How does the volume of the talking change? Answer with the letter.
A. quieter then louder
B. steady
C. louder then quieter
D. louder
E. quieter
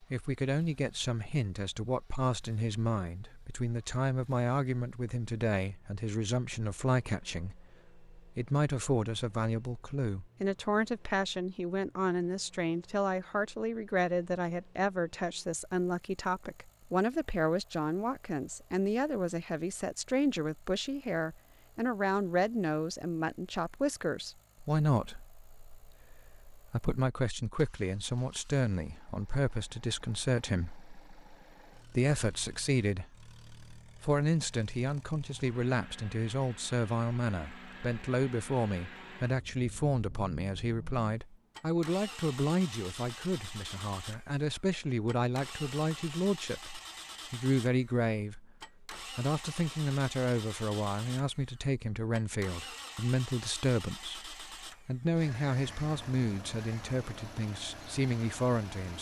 B.